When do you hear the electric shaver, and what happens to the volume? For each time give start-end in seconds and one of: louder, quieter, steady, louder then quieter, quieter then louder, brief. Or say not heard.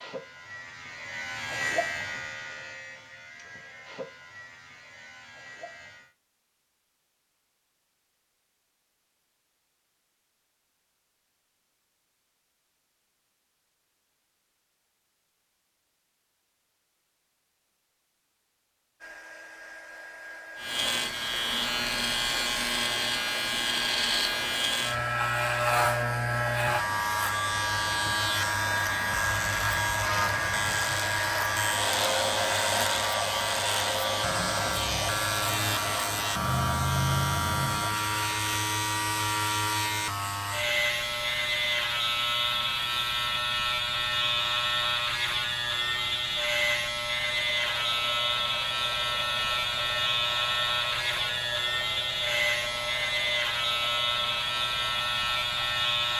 0.0-6.1 louder then quieter
20.6-56.1 steady.